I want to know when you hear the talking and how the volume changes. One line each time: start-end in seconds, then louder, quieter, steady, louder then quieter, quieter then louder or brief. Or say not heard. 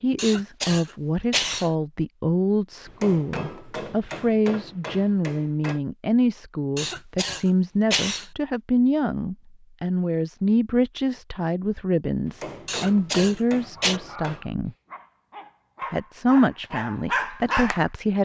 0.0-14.8 steady
15.9-18.2 brief.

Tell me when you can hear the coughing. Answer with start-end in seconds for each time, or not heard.
0.1-1.7, 6.8-8.2, 12.7-14.0.